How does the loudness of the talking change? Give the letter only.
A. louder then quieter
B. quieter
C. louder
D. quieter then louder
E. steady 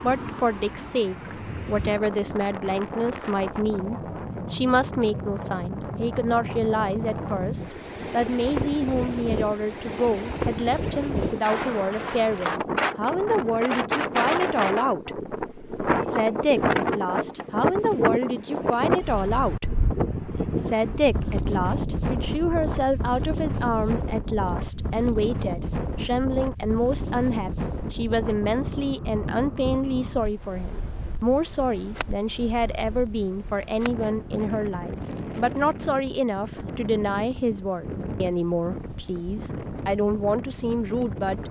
E.